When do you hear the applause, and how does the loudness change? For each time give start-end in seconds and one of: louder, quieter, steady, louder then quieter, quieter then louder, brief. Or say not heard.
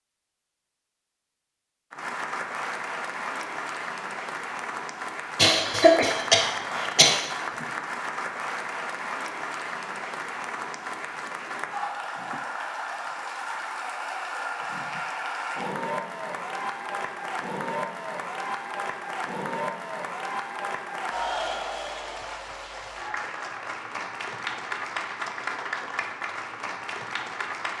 1.9-27.7 steady.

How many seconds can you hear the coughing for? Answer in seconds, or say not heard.
2 s.